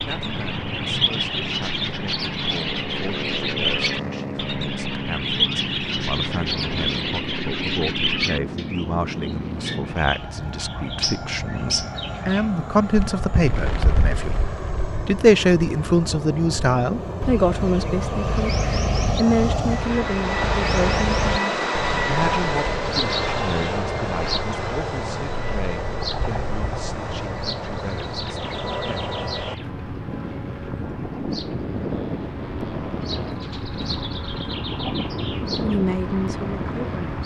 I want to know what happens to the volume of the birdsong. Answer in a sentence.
The volume of the birdsong goes down.